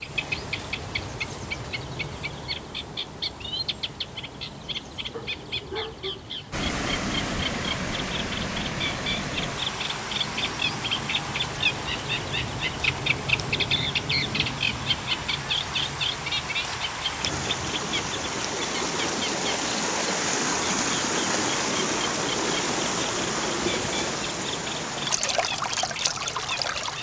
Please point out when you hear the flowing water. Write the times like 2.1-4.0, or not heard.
6.5-26.9.